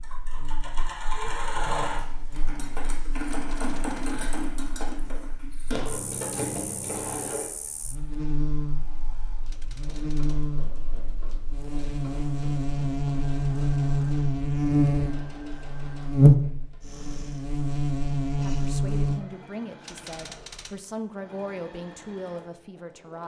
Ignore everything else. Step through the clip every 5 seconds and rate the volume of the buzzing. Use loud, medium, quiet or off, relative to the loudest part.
quiet, quiet, loud, loud, off.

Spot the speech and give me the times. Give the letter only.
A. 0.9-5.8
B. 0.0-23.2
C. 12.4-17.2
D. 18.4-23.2
D.